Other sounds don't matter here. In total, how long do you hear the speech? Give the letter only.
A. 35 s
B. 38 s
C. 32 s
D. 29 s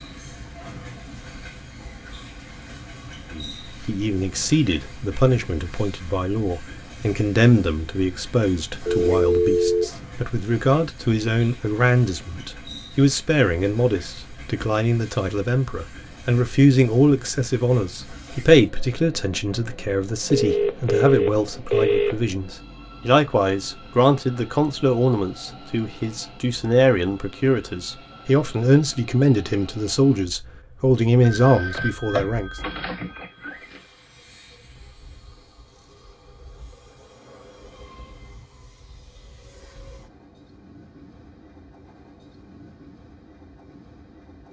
D.